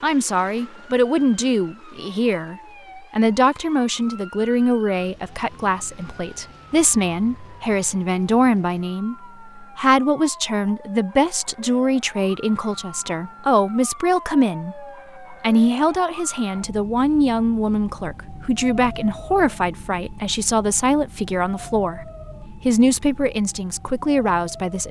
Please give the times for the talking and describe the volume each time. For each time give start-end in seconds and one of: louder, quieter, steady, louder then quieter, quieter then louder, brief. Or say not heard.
0.0-24.8 steady.